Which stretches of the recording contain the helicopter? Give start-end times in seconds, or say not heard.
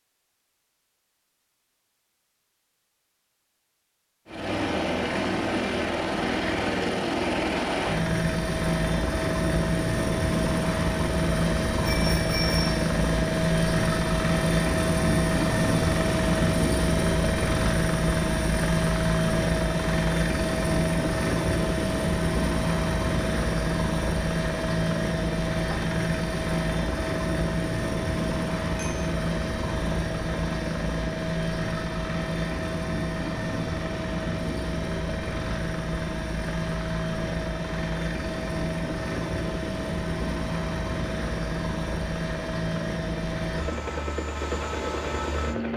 4.2-45.7.